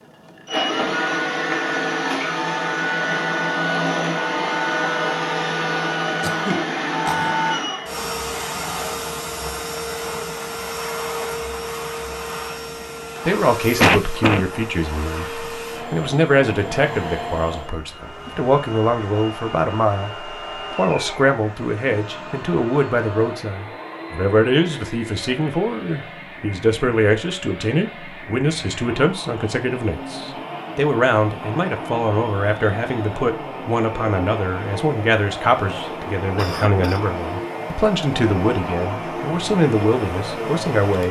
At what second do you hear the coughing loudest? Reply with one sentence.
The volume of the coughing peaks at 14 seconds.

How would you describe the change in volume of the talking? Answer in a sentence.
The volume of the talking stays about the same.